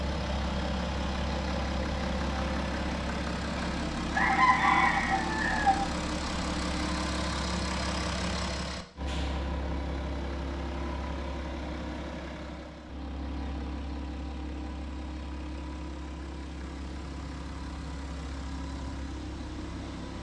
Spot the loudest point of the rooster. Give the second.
5 s.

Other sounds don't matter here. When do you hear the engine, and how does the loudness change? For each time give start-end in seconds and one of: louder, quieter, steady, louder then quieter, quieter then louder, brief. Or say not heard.
0.0-20.1 quieter.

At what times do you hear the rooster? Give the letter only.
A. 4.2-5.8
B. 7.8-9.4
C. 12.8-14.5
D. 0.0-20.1
A.